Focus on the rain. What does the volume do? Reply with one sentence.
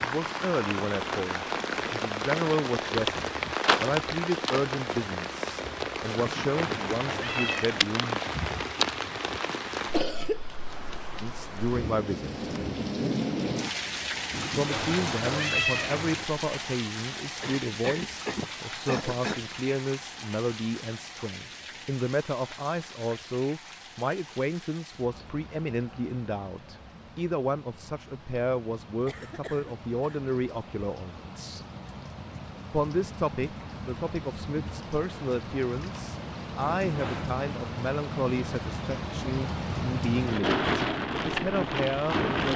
The loudness of the rain goes down, then up.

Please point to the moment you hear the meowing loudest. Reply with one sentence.
The volume of the meowing peaks at 16 seconds.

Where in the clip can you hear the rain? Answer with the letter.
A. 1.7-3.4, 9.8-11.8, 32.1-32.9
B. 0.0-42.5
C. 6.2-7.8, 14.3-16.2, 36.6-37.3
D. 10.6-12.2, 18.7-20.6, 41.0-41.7
B.